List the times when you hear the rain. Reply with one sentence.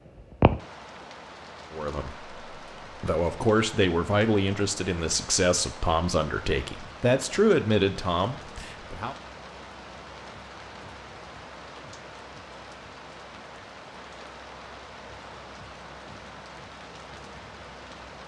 You can hear the rain from 0.0 to 18.2 s.